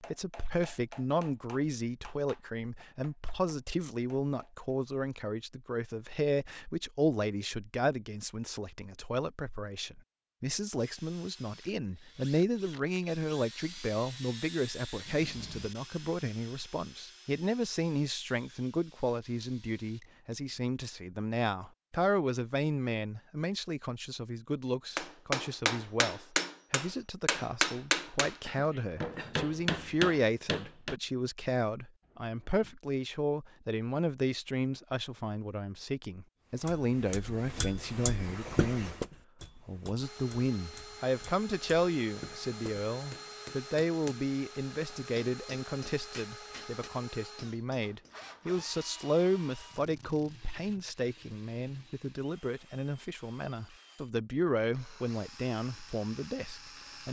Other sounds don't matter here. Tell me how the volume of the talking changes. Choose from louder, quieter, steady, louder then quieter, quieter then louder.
steady.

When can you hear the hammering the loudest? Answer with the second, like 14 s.
28 s.